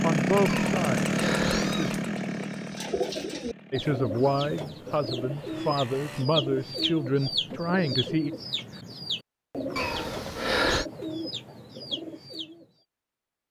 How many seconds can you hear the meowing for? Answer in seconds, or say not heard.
3 s.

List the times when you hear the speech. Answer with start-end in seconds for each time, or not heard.
0.0-1.9, 3.7-8.3.